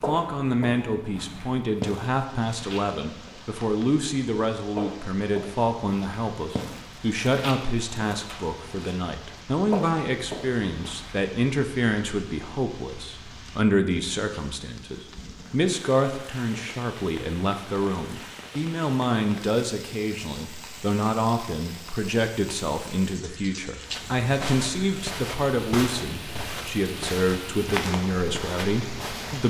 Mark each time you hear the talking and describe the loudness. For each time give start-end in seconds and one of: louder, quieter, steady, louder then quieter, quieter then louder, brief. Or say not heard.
0.1-29.4 steady.